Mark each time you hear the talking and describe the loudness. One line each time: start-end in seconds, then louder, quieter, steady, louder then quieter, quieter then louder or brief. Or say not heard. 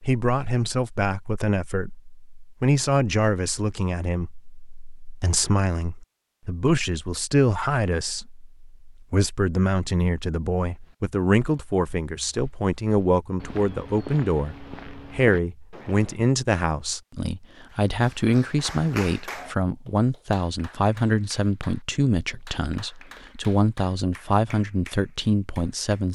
0.0-26.1 steady.